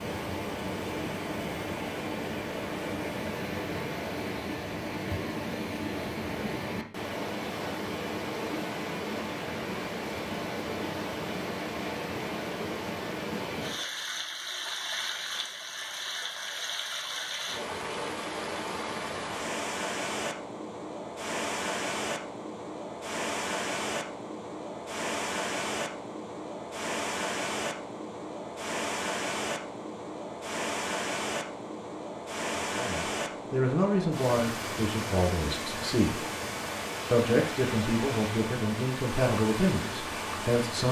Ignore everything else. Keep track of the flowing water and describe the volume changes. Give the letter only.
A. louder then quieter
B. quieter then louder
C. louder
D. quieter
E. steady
E.